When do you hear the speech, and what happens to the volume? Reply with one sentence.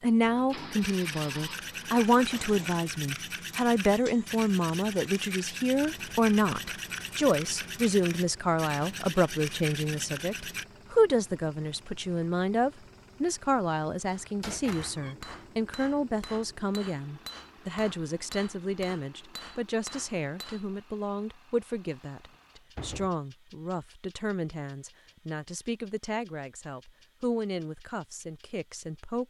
You can hear the speech from 0.0 to 29.2 s, getting quieter.